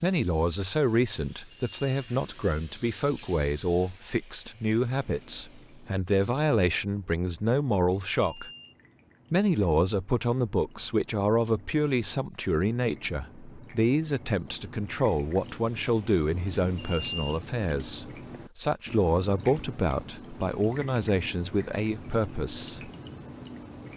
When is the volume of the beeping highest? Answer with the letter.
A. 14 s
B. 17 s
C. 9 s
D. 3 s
B.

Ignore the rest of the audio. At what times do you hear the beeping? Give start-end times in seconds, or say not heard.
1.5-2.1, 8.2-8.8, 16.8-17.9.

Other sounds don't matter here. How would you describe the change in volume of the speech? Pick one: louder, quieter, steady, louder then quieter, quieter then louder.
steady.